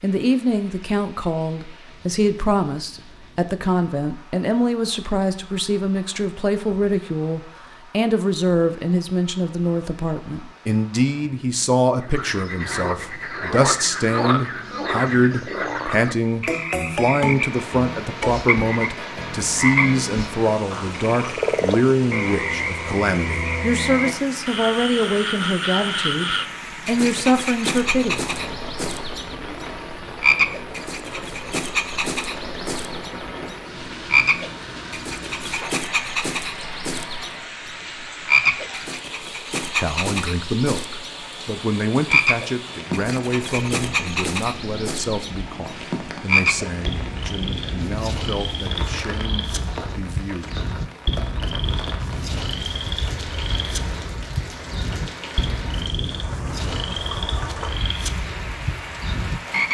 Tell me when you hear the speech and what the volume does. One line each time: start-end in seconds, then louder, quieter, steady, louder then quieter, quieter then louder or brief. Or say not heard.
0.0-28.1 steady
39.6-50.6 quieter.